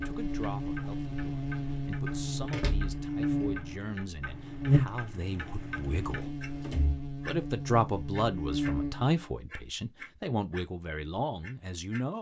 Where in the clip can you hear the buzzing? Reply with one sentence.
You can hear the buzzing from 0.0 to 9.2 s.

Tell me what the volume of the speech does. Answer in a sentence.
The loudness of the speech goes up.